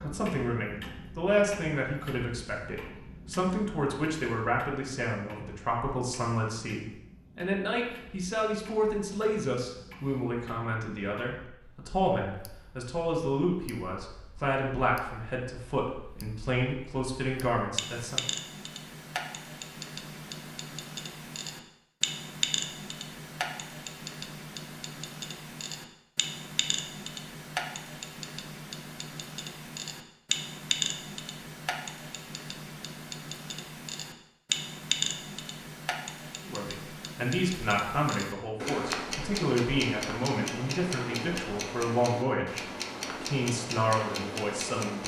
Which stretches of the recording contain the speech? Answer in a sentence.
The speech can be heard from 0.0 to 18.2 s and from 36.5 to 45.0 s.